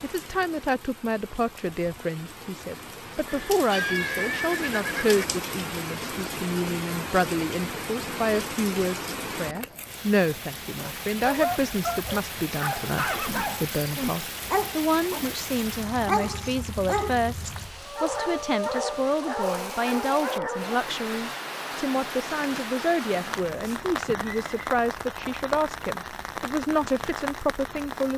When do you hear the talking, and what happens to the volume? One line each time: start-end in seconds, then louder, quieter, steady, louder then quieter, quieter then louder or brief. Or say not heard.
0.0-28.1 steady.